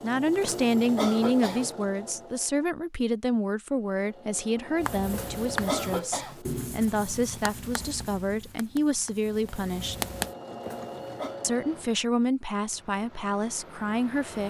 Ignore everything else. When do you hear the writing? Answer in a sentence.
You can hear the writing from 4.8 to 10.3 s.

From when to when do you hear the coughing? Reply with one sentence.
The coughing can be heard from 0.4 to 1.7 s, from 5.1 to 6.4 s and from 10.6 to 11.4 s.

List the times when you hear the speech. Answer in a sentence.
The speech can be heard from 0.0 to 9.9 s and from 11.4 to 14.4 s.